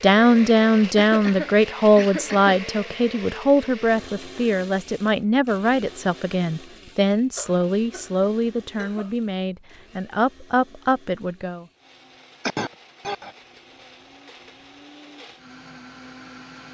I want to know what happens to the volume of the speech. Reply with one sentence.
The volume of the speech goes down.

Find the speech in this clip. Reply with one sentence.
The speech can be heard from 0.0 to 11.7 s.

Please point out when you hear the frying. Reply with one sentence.
The frying can't be heard in this clip.